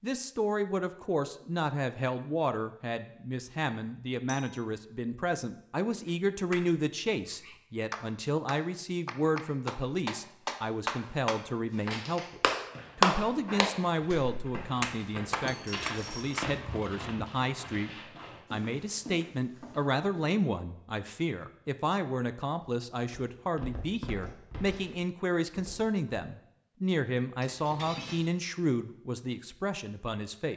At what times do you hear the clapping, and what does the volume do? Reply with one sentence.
The clapping can be heard from 6.0 to 16.6 s, getting louder then quieter.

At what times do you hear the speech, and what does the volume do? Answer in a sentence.
The speech can be heard from 0.0 to 30.5 s, at a steady volume.